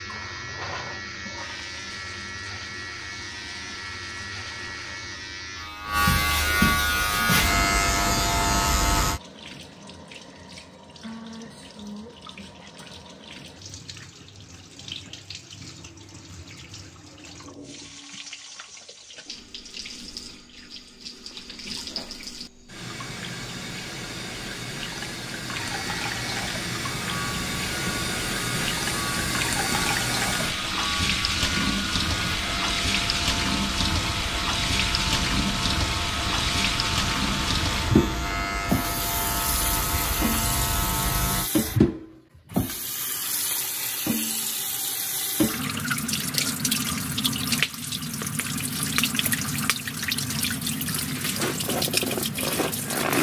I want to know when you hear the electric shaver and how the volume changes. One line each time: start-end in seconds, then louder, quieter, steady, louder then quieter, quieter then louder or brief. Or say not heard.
0.0-9.2 louder
25.6-41.5 louder.